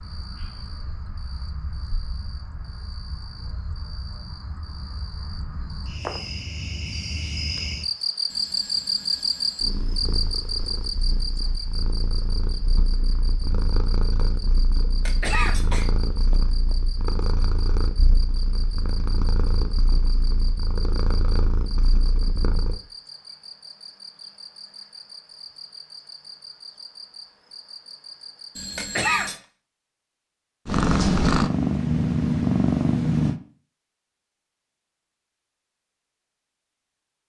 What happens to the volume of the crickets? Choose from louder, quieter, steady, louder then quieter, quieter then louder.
louder then quieter.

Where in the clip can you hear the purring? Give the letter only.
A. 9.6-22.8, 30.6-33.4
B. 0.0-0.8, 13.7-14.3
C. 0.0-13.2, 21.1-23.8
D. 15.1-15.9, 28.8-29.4
A.